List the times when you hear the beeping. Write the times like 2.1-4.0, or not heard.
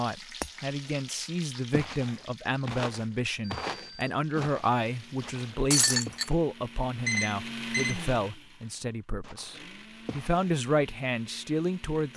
3.5-4.1, 7.0-8.0.